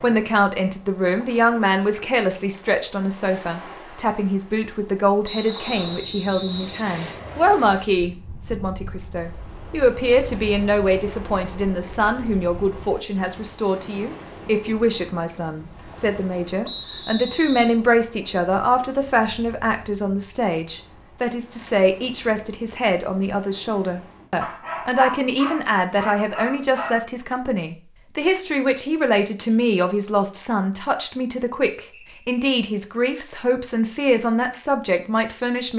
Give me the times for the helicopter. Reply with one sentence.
The helicopter can't be heard in this clip.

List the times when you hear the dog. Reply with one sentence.
You can hear the dog from 24.4 to 27.0 s.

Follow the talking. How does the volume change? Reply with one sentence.
The volume of the talking stays about the same.